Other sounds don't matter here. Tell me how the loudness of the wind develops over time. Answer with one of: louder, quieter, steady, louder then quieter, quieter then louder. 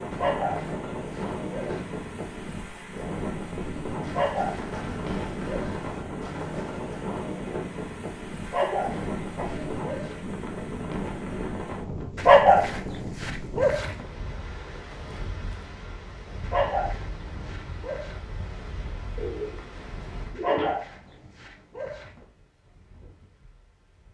quieter.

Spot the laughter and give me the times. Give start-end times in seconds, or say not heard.
not heard.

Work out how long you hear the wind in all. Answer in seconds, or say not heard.
24 s.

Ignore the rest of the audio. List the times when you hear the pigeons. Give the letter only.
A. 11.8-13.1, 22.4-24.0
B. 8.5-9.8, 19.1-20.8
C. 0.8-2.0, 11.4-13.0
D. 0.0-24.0
B.